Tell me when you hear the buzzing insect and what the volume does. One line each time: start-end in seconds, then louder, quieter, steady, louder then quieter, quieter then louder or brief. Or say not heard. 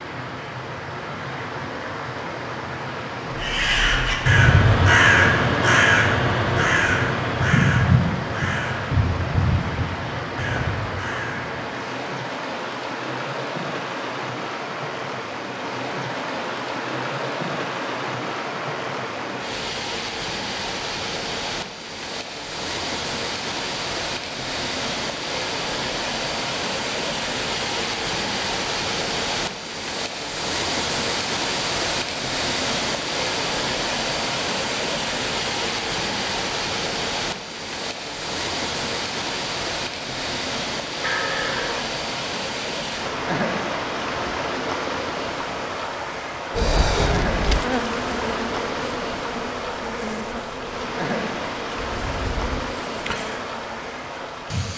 46.5-54.5 quieter.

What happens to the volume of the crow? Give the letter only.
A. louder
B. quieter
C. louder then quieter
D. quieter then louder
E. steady
B.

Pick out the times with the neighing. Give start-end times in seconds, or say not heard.
41.0-42.0.